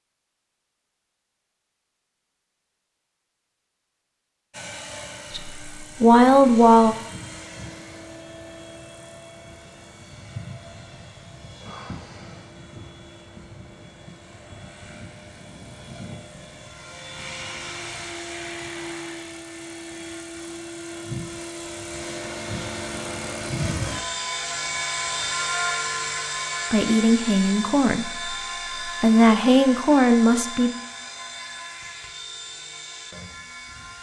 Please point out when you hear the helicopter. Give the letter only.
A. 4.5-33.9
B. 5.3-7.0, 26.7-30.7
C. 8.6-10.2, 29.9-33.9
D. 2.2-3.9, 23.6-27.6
A.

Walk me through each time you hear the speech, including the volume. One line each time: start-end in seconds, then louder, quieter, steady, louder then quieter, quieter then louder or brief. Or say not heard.
5.3-7.0 brief
26.7-30.7 quieter then louder.